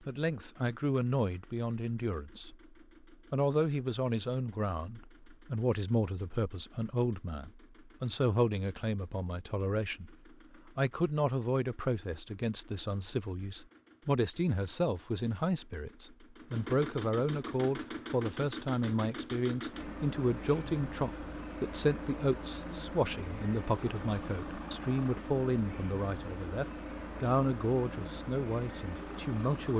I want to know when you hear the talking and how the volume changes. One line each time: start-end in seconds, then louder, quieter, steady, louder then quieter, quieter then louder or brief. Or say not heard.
0.1-2.5 brief
3.3-29.7 steady.